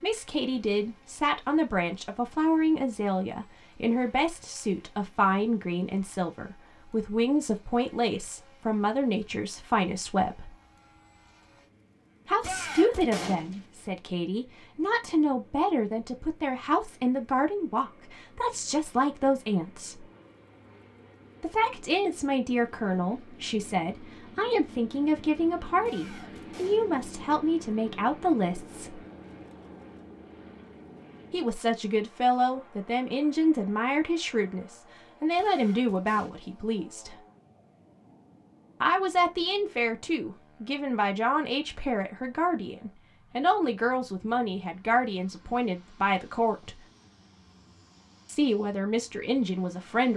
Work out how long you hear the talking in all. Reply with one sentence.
You can hear the talking for 42 seconds altogether.